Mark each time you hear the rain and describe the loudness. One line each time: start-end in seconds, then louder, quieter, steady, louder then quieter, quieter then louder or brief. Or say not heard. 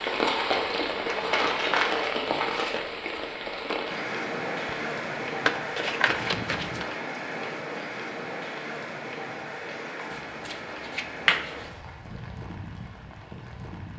0.0-13.9 quieter.